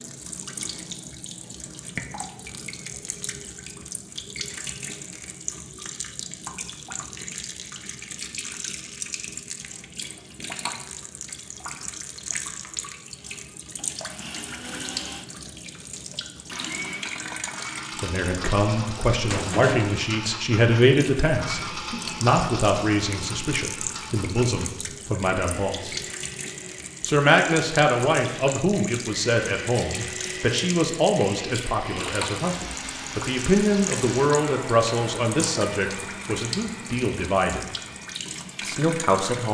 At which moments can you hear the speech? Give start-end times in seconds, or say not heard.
18.0-26.0, 27.1-37.6, 38.6-39.4.